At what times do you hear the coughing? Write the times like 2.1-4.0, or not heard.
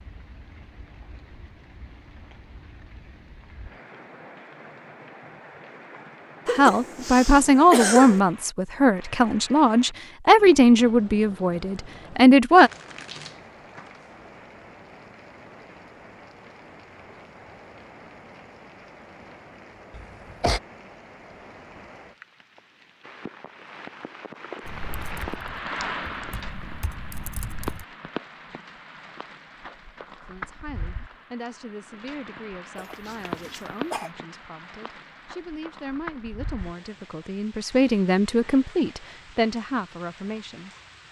6.5-8.2, 19.9-20.6, 32.8-34.1.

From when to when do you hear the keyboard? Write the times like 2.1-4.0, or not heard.
24.6-27.9.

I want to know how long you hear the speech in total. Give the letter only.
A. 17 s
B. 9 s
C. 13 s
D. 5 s
A.